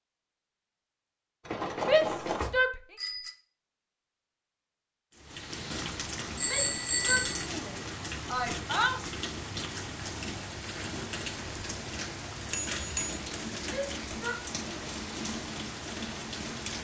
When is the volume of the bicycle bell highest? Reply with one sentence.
The volume of the bicycle bell peaks at 7 seconds.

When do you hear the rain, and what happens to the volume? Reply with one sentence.
You can hear the rain from 5.1 to 16.7 s, at a steady volume.